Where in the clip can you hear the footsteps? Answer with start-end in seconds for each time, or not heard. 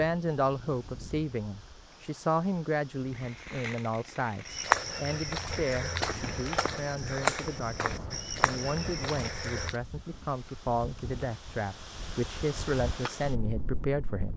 4.5-9.8.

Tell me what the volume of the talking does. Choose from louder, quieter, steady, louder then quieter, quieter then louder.
quieter then louder.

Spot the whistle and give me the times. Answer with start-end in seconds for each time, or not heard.
not heard.